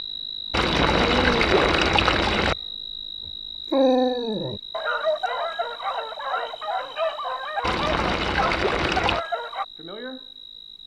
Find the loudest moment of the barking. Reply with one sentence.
The loudest moment of the barking is at 4 seconds.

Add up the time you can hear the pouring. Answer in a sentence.
The pouring can be heard for 4 seconds in total.